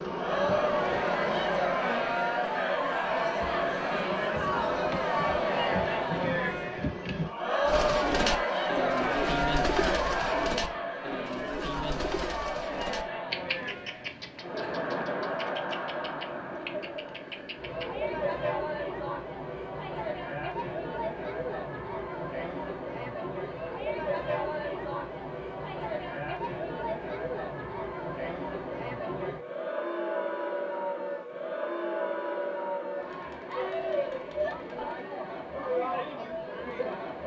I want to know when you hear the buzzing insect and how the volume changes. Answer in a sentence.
You can hear the buzzing insect from 0.0 to 7.3 s, getting quieter then louder.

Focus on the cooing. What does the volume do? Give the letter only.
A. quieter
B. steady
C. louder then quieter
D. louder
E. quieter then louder
A.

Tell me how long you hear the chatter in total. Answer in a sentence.
You can hear the chatter for 37 seconds altogether.